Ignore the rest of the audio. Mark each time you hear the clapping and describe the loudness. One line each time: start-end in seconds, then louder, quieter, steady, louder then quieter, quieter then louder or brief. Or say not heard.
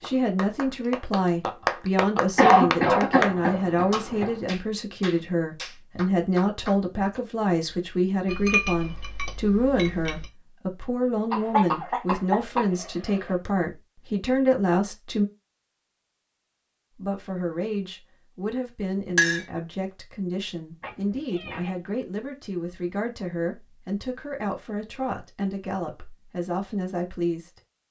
0.0-7.2 quieter.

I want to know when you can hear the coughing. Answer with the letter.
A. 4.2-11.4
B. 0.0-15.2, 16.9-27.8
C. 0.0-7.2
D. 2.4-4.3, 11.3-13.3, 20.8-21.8
D.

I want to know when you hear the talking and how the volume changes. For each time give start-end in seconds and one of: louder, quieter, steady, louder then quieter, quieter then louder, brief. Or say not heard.
0.0-15.2 steady
16.9-27.8 steady.